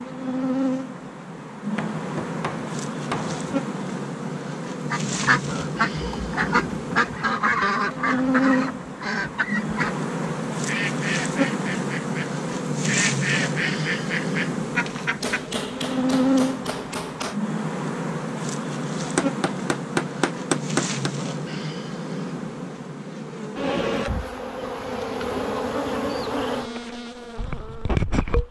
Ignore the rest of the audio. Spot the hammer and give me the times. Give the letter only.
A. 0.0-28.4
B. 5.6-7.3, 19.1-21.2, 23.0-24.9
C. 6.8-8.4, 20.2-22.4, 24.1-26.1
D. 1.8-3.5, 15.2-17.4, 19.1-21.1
D.